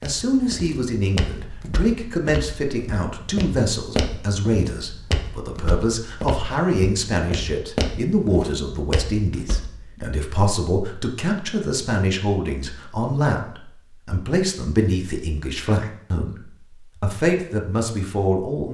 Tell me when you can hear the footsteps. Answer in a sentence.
You can hear the footsteps from 0.0 to 9.7 s.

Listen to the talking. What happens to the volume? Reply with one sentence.
The volume of the talking stays about the same.